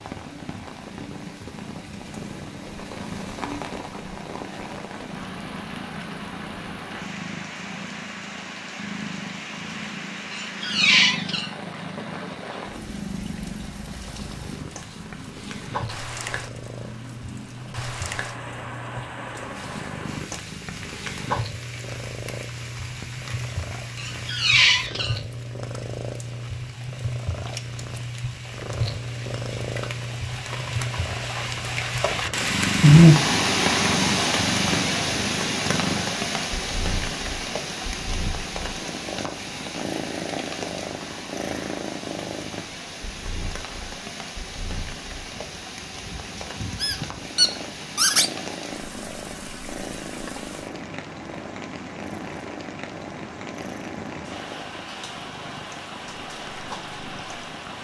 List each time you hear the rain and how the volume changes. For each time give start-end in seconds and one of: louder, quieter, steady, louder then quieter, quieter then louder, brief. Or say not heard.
0.0-57.7 louder then quieter.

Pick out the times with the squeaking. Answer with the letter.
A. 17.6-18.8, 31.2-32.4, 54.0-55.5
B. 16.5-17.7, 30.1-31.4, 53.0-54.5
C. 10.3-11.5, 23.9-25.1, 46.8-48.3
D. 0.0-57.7
C.